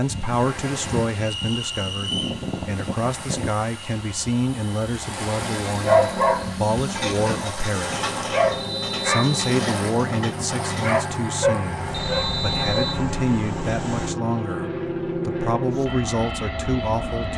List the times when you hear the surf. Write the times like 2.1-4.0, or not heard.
0.0-14.2.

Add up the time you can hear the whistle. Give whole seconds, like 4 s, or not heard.
3 s.